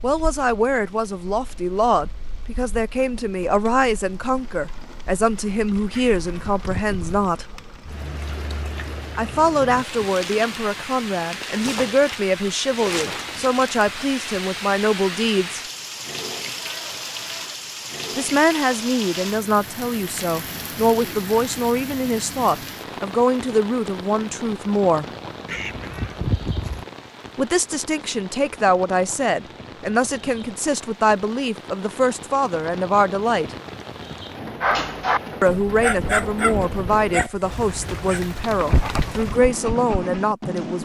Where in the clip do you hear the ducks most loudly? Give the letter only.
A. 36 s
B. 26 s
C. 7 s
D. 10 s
B.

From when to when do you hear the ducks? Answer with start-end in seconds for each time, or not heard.
5.9-7.3, 25.4-26.9.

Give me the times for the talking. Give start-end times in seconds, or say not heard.
0.0-7.5, 9.2-15.6, 18.1-25.1, 27.4-33.5, 35.4-40.7.